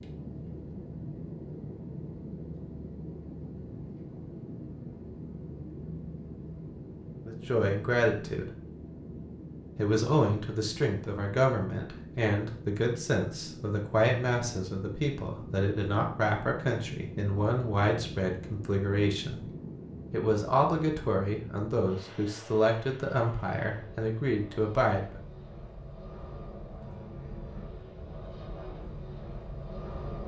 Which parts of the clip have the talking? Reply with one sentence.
The talking can be heard from 7.2 to 8.4 s, from 9.8 to 19.5 s and from 20.1 to 25.2 s.